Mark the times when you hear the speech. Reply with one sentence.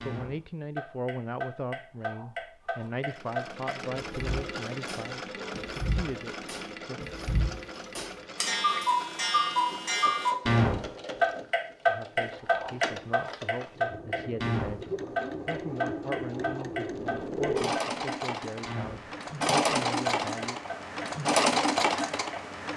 You can hear the speech from 0.0 to 7.0 s and from 11.8 to 20.6 s.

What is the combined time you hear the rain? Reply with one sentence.
The rain can't be heard in this clip.